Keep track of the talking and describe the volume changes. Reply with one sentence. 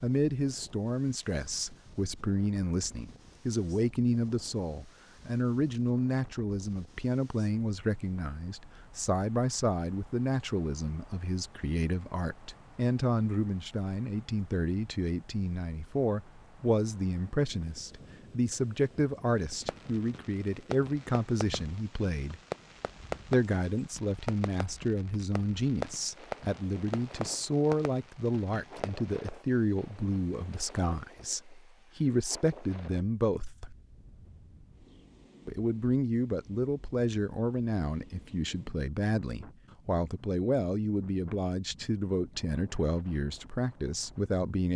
The volume of the talking stays about the same.